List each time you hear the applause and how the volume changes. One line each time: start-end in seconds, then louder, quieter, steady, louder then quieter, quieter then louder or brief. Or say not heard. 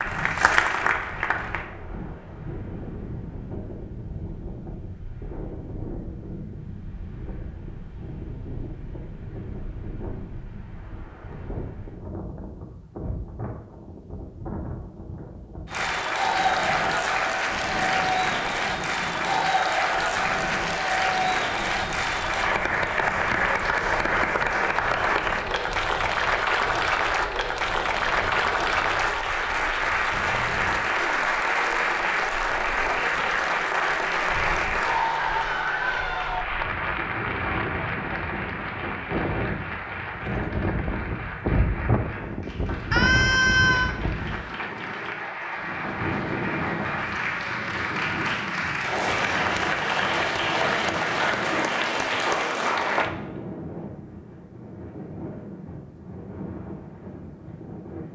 0.0-1.6 brief
15.7-53.1 quieter then louder.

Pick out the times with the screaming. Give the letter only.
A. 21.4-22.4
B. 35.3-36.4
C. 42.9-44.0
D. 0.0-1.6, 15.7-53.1
C.